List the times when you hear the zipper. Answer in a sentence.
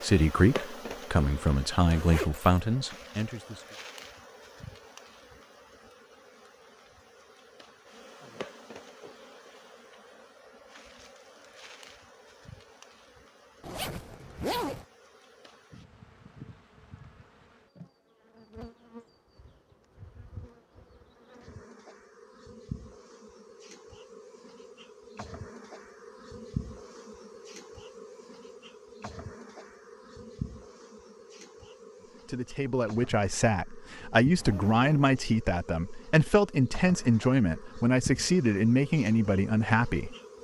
The zipper can be heard from 1.4 to 2.5 s, from 13.6 to 14.8 s and from 34.4 to 35.2 s.